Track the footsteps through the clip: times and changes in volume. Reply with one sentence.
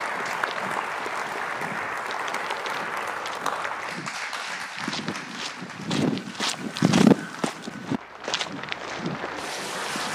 The footsteps can be heard from 0.0 to 10.0 s, getting louder then quieter.